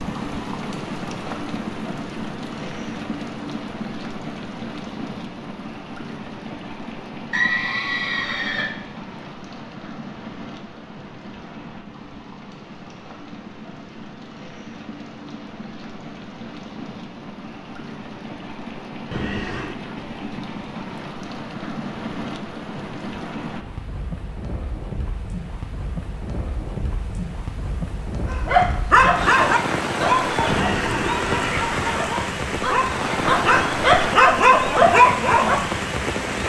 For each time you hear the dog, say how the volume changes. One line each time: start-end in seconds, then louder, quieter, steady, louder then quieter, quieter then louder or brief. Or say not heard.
28.3-35.7 quieter then louder.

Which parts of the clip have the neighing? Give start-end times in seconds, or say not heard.
7.3-8.8, 19.1-19.8, 30.4-32.0.